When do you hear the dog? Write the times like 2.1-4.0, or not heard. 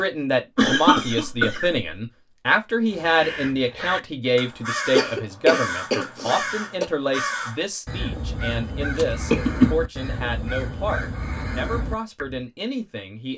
not heard.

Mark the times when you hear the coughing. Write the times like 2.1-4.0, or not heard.
0.6-1.8, 5.0-6.8, 8.9-9.7.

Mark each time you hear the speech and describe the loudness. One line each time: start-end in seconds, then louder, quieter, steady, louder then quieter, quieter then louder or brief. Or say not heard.
0.0-13.3 quieter.